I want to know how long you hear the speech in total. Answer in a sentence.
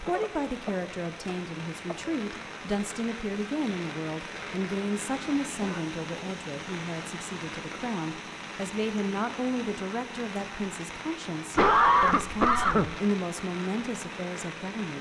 You can hear the speech for 15 seconds altogether.